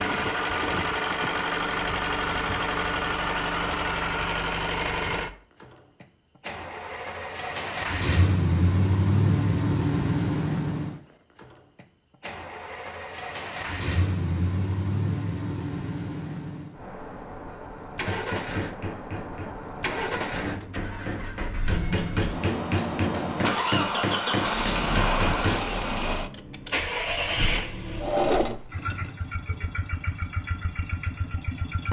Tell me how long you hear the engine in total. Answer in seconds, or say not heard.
32 s.